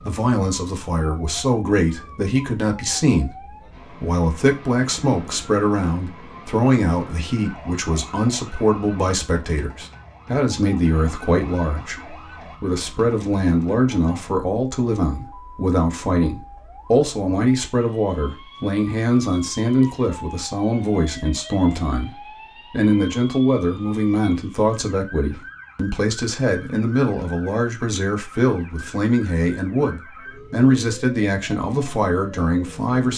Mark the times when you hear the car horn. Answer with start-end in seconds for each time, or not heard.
not heard.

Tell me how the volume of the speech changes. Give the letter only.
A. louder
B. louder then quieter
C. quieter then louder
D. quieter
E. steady
E.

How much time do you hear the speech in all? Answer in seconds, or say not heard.
33 s.